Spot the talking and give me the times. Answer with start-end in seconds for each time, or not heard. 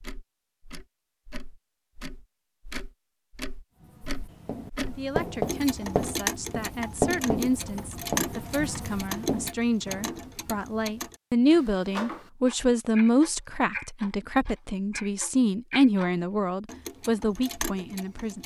4.8-18.4.